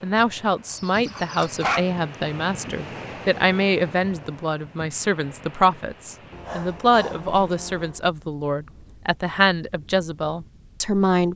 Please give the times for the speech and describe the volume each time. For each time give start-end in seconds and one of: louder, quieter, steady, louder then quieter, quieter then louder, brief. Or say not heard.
0.0-11.3 steady.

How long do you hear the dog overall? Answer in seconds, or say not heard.
3 s.